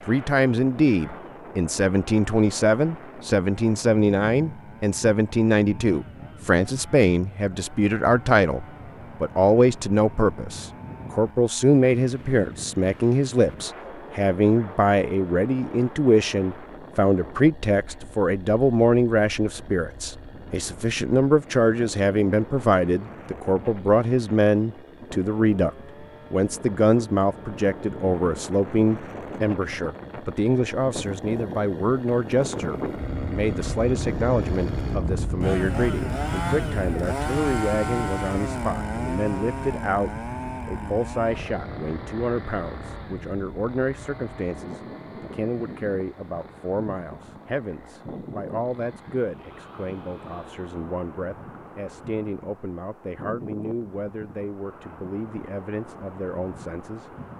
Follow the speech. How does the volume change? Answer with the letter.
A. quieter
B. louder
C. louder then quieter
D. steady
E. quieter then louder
A.